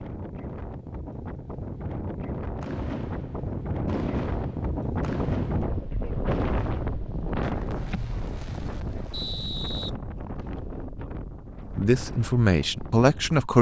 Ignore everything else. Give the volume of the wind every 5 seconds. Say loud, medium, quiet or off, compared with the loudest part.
loud, loud, medium.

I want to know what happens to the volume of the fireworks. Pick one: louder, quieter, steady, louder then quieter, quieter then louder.
quieter.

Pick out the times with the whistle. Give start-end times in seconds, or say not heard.
9.1-10.6.